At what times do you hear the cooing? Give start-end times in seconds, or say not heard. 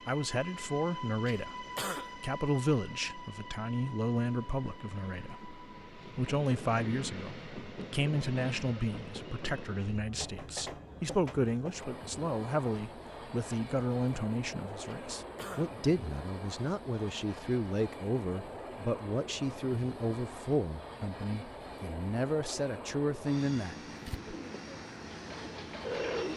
23.9-26.3.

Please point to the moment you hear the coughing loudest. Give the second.
2 s.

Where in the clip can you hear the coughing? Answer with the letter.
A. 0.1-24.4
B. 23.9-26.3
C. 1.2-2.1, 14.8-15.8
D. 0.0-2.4
C.